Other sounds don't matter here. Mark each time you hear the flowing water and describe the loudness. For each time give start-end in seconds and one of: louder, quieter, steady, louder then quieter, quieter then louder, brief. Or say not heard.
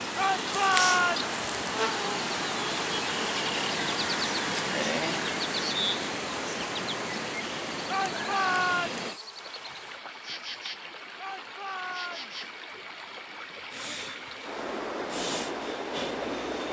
0.0-16.6 quieter then louder.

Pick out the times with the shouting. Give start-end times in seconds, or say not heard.
0.1-1.4, 7.8-9.1, 11.2-12.3.